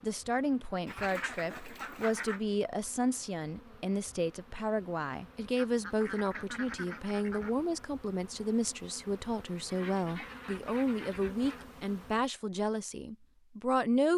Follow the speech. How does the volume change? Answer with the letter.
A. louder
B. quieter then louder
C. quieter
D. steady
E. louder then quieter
D.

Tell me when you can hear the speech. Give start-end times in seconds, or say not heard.
0.0-14.1.